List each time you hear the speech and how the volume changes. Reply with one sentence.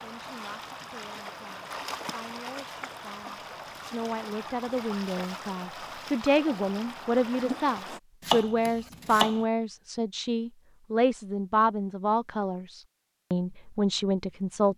The speech can be heard from 0.0 to 14.7 s, getting louder.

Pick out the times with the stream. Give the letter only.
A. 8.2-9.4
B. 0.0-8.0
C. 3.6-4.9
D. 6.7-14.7
B.